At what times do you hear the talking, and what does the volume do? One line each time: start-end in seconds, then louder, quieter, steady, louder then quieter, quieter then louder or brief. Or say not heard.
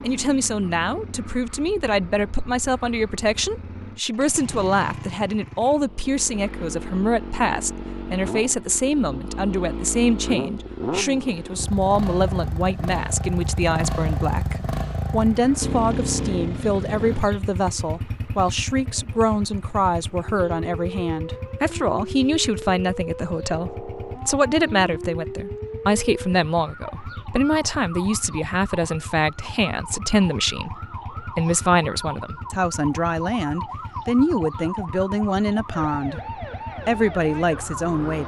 0.0-36.2 steady
36.9-38.2 brief.